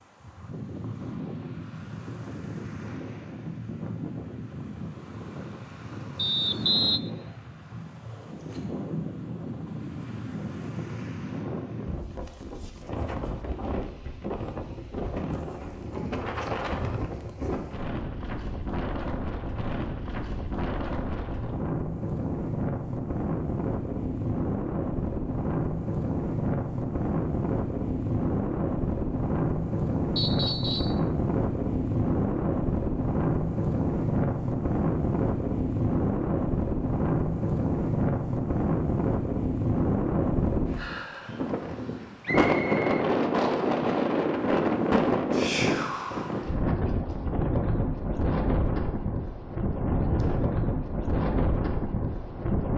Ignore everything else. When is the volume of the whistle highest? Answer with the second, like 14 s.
7 s.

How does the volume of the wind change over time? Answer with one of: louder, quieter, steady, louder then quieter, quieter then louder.
louder.